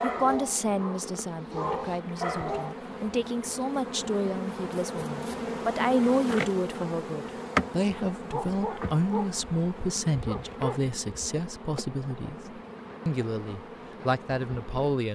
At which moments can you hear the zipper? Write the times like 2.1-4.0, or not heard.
not heard.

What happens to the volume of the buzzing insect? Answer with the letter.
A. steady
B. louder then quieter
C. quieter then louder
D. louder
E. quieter
B.